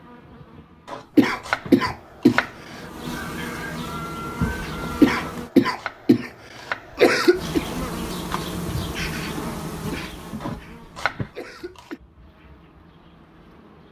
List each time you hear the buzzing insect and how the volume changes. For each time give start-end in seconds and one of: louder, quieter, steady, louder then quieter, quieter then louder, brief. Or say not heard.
0.0-5.5 louder
7.3-13.8 quieter.